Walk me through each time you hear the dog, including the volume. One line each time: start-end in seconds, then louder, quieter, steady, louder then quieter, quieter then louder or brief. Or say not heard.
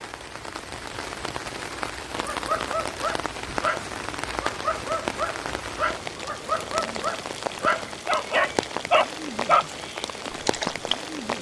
2.1-10.9 louder.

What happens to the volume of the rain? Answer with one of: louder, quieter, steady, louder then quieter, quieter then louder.
steady.